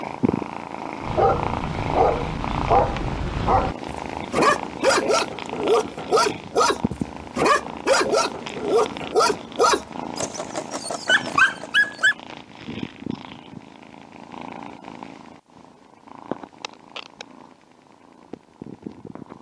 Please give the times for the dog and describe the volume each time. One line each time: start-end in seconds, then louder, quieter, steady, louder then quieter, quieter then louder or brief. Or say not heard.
1.0-12.2 steady.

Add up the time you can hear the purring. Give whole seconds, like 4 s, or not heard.
19 s.